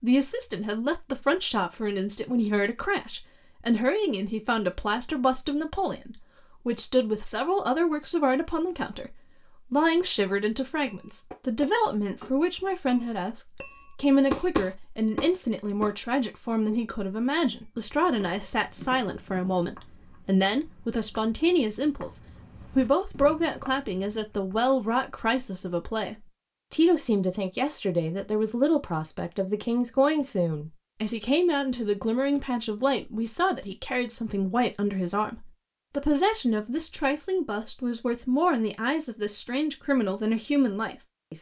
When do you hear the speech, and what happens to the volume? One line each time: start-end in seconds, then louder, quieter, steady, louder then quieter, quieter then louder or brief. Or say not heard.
0.0-41.3 steady.